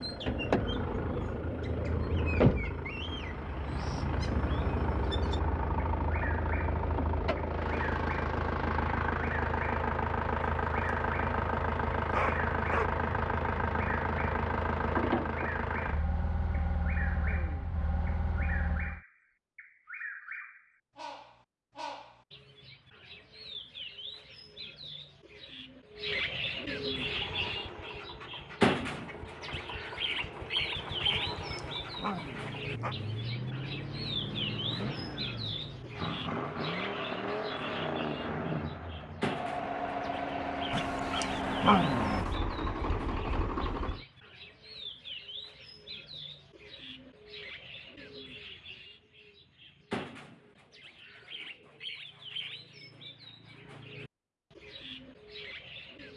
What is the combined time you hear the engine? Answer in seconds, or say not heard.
36 s.